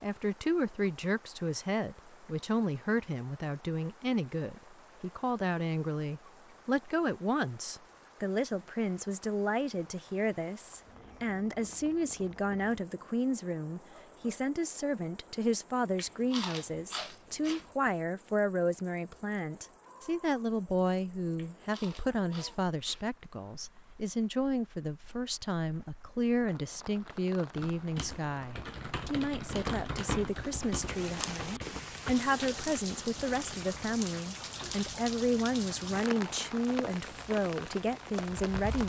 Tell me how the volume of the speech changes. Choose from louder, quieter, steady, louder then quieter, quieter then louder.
steady.